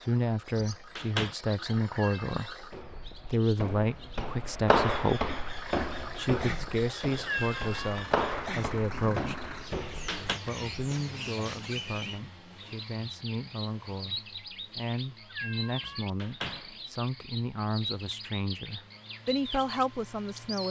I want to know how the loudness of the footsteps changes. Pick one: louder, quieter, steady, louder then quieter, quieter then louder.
quieter.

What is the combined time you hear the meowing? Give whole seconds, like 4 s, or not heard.
2 s.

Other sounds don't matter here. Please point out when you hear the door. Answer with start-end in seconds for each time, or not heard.
0.6-1.4, 9.7-10.4, 15.8-16.8.